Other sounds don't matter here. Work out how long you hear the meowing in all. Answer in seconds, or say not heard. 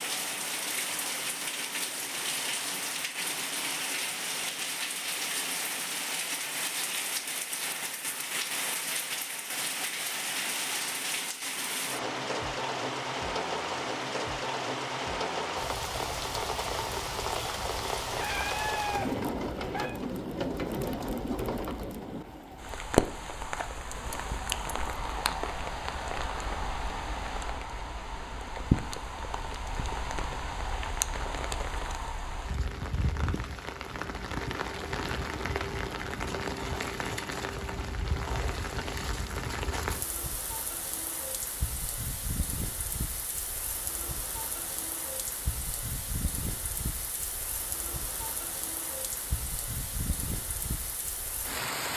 2 s.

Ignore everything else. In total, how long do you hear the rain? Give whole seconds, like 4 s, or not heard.
52 s.